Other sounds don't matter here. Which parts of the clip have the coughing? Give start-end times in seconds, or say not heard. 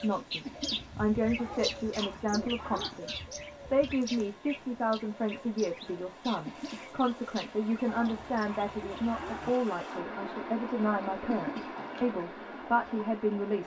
0.5-2.1, 6.5-7.0, 11.2-11.8.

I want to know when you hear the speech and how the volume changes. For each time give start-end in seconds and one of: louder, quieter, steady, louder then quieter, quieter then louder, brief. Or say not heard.
0.0-13.6 steady.